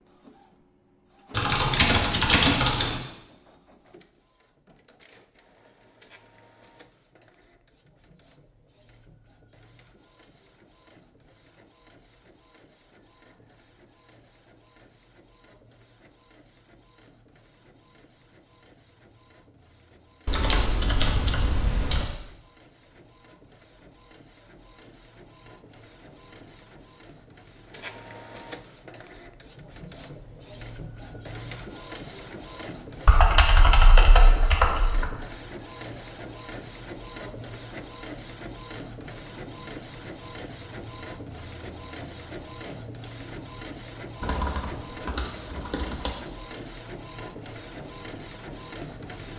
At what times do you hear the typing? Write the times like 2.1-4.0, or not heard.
1.4-3.0, 20.2-22.1, 33.0-35.1, 44.2-46.1.